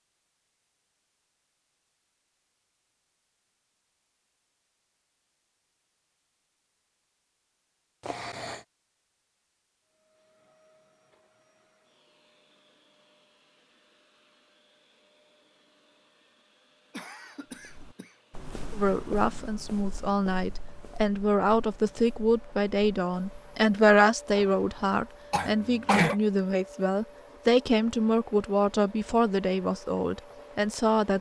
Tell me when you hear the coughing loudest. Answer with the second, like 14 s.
26 s.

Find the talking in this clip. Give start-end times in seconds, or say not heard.
18.7-31.1.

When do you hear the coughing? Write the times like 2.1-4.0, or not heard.
8.1-8.6, 16.9-18.1, 25.3-26.1.